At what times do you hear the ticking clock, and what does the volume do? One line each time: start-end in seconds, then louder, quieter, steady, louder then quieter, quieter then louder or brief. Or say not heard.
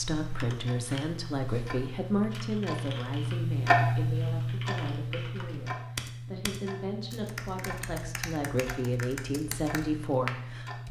0.0-10.8 louder then quieter.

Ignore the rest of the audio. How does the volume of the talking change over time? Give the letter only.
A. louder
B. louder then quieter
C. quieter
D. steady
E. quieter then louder
E.